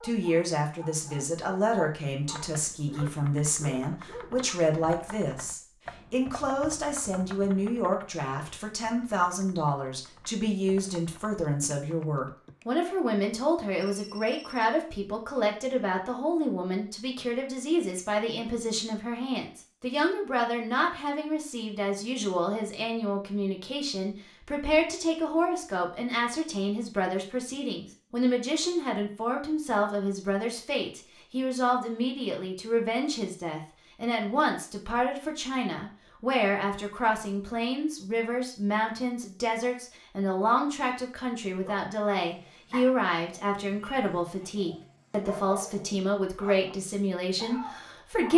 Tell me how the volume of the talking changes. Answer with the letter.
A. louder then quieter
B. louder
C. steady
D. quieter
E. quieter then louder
C.